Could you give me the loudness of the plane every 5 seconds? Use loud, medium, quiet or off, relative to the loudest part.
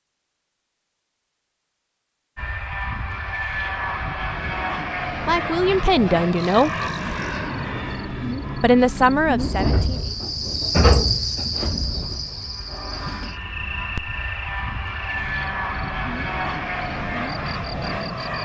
loud, loud, medium, loud.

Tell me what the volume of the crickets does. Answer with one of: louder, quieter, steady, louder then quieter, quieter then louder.
louder then quieter.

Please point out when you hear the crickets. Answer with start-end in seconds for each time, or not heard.
6.3-18.3.